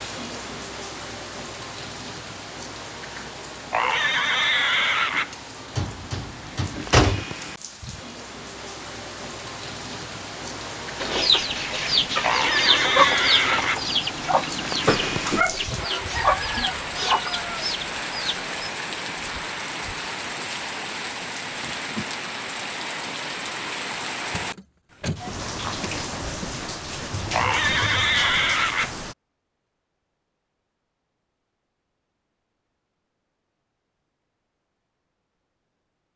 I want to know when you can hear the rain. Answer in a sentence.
You can hear the rain from 0.0 to 29.1 s.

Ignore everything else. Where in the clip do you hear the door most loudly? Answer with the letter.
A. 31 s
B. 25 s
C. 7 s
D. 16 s
C.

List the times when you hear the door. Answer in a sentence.
You can hear the door from 5.8 to 7.2 s, from 14.8 to 15.7 s and from 24.3 to 25.2 s.